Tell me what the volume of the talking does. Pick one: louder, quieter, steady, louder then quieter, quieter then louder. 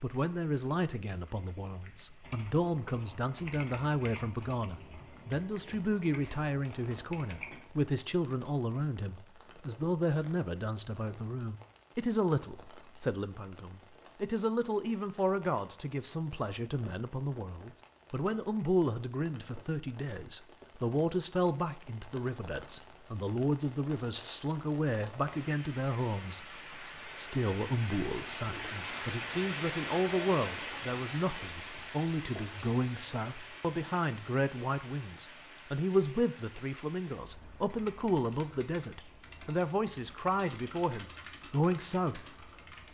steady.